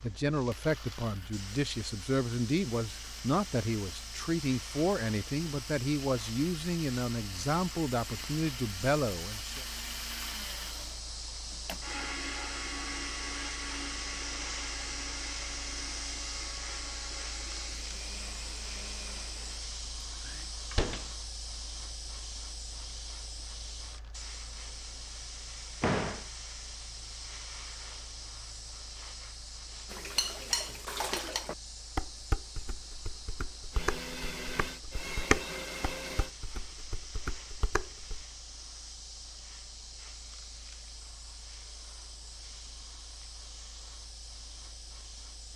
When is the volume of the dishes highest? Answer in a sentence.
The loudest moment of the dishes is at 35 seconds.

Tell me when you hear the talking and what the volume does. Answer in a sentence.
The talking can be heard from 0.0 to 9.7 s, at a steady volume.